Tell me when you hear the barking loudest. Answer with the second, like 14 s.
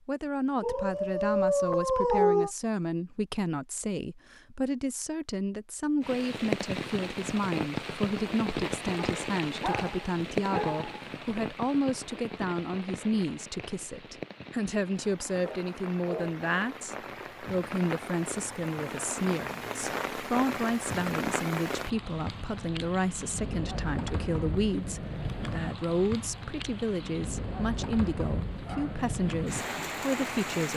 2 s.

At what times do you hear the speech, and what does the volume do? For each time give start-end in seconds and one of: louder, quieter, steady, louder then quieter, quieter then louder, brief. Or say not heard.
0.1-30.7 steady.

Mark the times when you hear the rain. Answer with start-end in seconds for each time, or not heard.
6.0-30.7.